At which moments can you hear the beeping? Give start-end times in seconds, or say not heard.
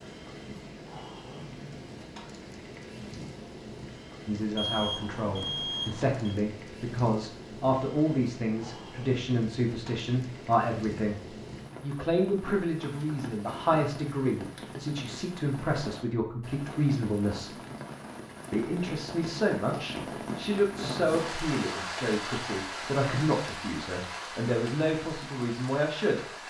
4.5-6.2.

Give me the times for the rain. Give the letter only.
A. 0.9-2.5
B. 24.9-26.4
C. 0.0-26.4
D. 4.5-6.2
C.